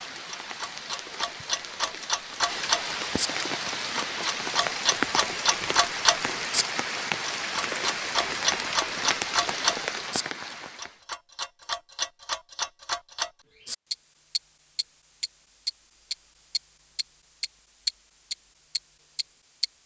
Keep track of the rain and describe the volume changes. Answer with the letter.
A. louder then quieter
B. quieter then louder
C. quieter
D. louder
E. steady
D.